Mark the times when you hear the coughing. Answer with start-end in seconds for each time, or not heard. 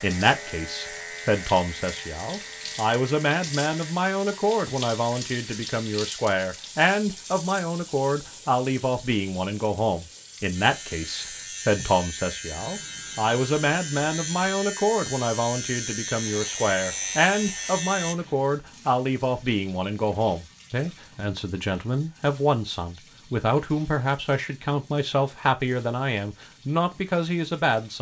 not heard.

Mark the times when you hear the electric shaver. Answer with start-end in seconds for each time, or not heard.
0.0-4.0, 10.6-18.1.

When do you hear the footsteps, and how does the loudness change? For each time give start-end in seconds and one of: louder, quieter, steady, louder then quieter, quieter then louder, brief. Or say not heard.
not heard.